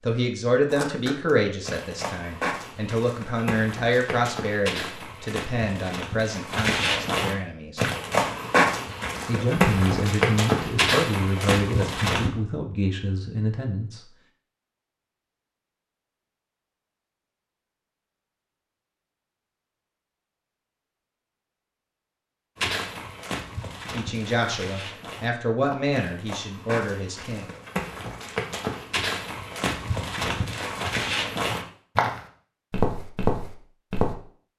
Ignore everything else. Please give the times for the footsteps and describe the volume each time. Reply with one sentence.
You can hear the footsteps from 0.7 to 12.3 s, getting louder; and from 22.6 to 34.1 s, getting louder.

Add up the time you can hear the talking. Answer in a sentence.
The talking can be heard for 16 seconds in total.